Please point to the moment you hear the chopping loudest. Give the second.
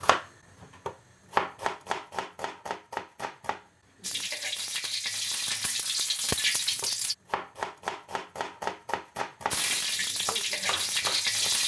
2 s.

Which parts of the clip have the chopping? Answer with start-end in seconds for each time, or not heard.
0.0-4.2, 6.7-11.6.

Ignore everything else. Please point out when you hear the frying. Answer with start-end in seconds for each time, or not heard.
4.0-7.2, 9.5-11.6.